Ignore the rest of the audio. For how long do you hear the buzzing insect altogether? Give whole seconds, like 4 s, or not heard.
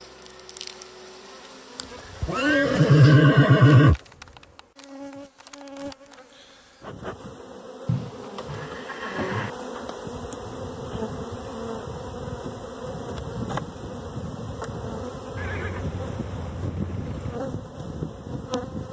19 s.